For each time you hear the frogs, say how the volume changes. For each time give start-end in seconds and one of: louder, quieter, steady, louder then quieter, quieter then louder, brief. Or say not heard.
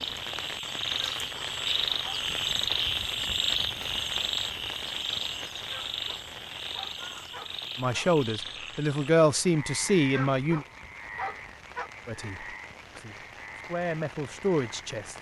0.0-15.0 quieter.